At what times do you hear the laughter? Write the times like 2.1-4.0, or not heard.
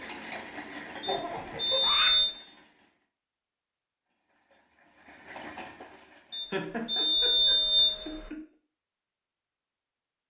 1.1-2.1, 6.5-8.4.